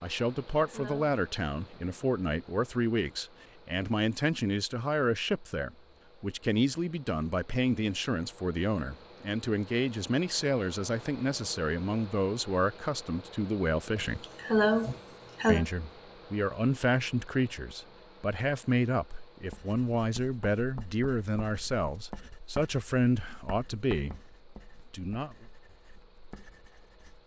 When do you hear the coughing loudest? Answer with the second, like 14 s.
15 s.